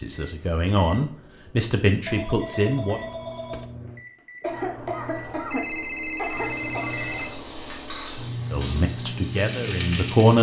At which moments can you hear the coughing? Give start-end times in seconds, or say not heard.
4.4-7.0.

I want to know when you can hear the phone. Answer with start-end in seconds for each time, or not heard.
2.0-3.7, 5.5-7.4.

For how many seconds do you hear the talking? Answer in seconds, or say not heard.
5 s.